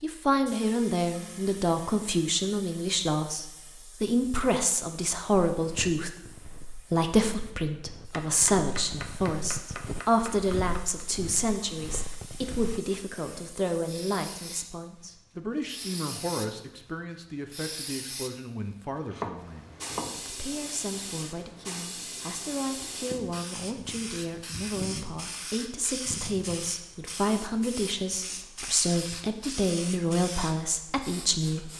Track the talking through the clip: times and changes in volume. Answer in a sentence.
The talking can be heard from 0.0 to 31.7 s, getting quieter then louder.